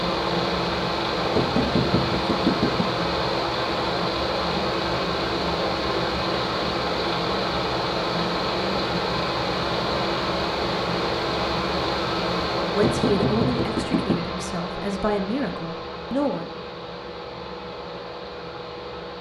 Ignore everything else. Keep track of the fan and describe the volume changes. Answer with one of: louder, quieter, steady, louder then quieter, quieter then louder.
quieter.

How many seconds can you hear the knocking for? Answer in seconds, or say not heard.
3 s.